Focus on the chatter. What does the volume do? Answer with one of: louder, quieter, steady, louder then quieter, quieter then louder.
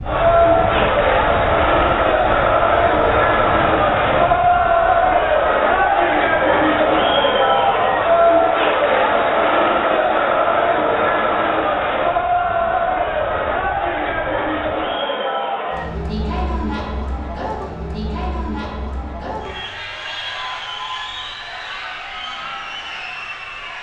quieter.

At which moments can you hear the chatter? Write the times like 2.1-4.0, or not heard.
0.0-23.7.